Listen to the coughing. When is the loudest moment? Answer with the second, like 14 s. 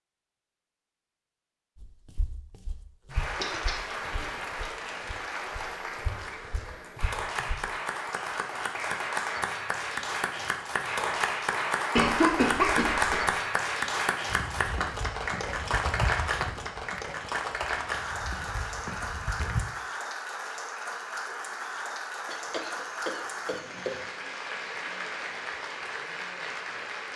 12 s.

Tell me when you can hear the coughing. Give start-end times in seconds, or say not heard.
3.4-4.8, 11.9-13.3, 22.2-24.1.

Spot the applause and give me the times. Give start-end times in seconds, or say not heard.
3.1-27.1.